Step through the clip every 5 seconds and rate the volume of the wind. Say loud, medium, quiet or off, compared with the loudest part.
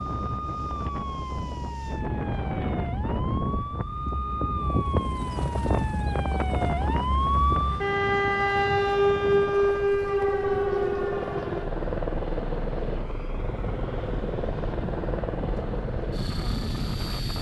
loud, loud, medium, medium.